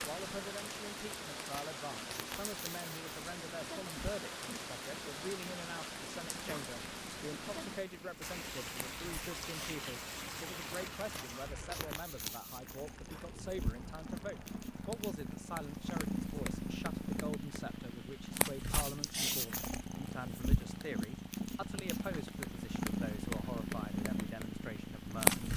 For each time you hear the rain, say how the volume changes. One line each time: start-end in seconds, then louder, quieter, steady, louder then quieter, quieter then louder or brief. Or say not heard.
0.0-25.5 quieter.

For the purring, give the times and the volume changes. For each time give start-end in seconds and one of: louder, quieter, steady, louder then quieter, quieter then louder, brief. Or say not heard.
0.0-25.5 louder.